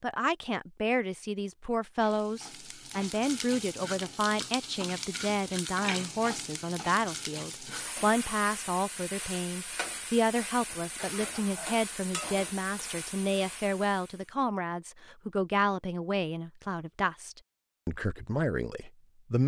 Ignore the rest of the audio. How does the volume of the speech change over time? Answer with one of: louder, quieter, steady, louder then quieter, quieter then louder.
steady.